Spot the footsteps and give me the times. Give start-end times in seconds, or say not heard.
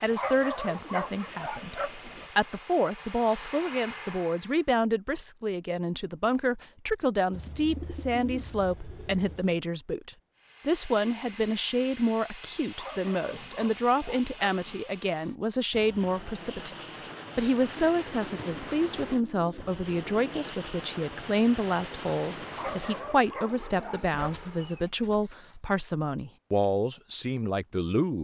not heard.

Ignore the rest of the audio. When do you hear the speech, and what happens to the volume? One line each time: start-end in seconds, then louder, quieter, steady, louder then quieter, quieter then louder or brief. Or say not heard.
0.0-28.1 steady.